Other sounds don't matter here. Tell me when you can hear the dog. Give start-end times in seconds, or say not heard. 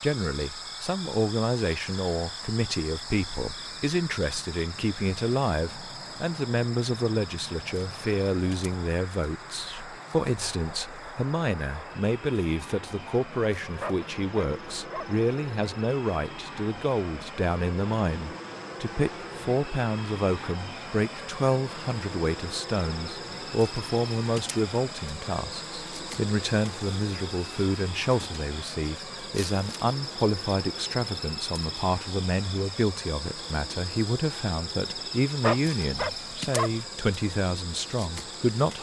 13.8-15.1, 35.4-36.7.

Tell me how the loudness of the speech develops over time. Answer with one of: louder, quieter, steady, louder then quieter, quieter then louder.
steady.